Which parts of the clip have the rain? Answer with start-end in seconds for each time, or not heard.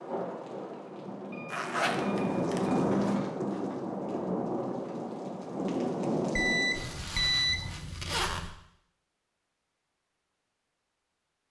0.0-7.0.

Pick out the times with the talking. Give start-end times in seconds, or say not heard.
not heard.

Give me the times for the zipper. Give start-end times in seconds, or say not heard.
1.5-3.1, 6.8-8.5.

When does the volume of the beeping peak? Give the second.
7 s.